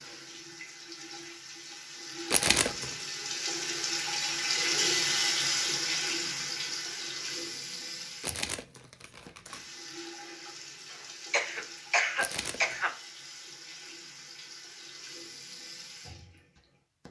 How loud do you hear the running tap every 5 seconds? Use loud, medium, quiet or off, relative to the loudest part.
loud, loud, quiet, quiet.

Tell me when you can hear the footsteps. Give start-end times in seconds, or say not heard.
not heard.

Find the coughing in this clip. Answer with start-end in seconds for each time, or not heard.
10.9-12.9.